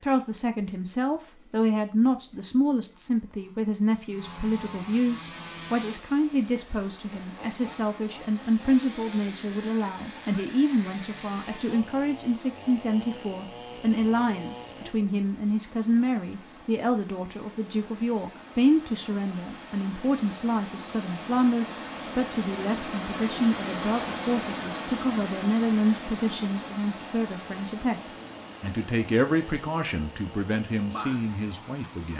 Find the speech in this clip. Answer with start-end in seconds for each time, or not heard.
0.0-28.0, 28.6-32.1.